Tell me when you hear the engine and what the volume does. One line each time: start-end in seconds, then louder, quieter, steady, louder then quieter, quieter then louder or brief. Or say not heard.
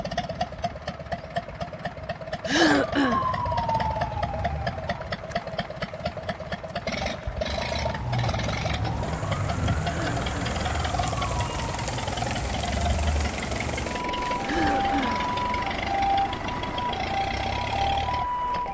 0.0-18.6 steady.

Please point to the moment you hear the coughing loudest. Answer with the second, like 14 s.
3 s.